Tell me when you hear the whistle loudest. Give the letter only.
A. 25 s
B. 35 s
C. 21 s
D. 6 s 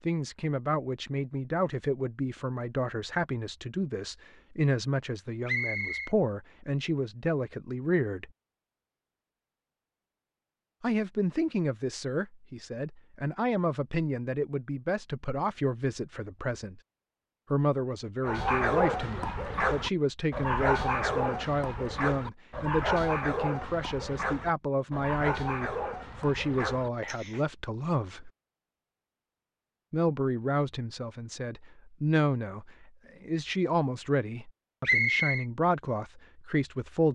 B.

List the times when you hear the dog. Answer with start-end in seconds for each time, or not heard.
18.2-27.4.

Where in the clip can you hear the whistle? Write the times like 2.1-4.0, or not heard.
5.5-6.1, 34.9-35.5.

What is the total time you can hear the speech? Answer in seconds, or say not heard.
32 s.